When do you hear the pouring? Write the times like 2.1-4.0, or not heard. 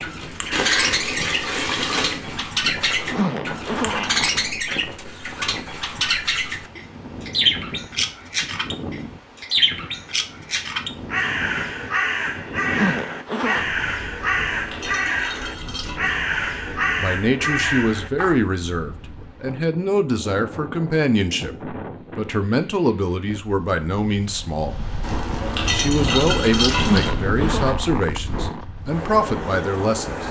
0.5-2.2, 14.2-16.0, 25.0-27.1.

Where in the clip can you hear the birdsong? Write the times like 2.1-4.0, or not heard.
0.0-18.4.